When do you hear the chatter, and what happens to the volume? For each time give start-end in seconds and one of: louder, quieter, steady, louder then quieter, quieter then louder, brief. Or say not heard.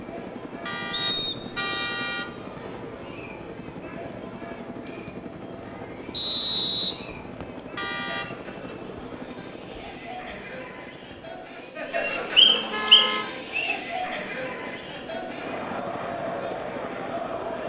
0.0-17.6 louder.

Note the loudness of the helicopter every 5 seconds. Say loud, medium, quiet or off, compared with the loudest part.
loud, loud, medium, loud.